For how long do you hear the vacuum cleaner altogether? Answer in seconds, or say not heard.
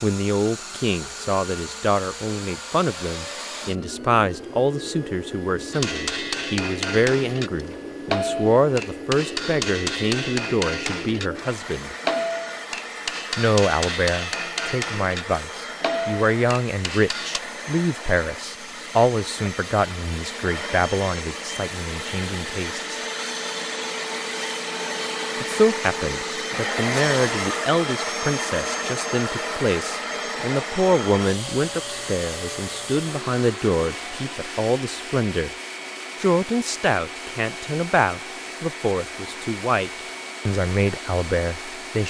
42 s.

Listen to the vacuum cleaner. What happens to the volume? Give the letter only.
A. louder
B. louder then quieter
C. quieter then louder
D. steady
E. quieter
B.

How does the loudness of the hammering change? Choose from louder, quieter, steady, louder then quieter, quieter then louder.
steady.